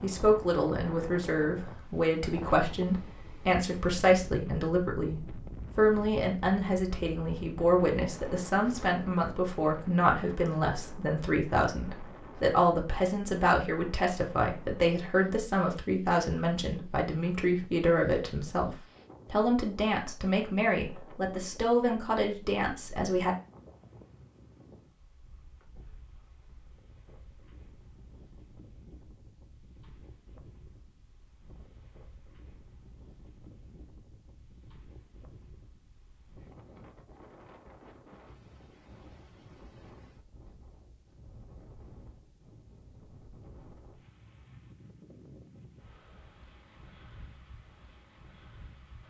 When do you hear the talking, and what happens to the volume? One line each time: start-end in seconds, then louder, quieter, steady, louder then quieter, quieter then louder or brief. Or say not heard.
0.0-23.4 steady.